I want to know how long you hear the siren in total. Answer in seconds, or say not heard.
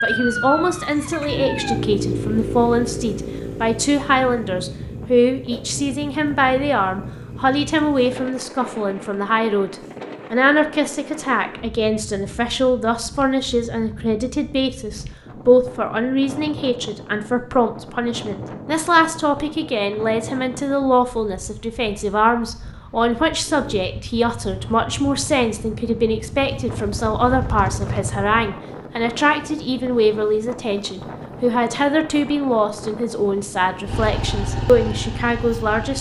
2 s.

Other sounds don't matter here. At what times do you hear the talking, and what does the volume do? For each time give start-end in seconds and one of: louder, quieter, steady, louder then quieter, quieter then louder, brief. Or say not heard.
0.0-35.9 steady.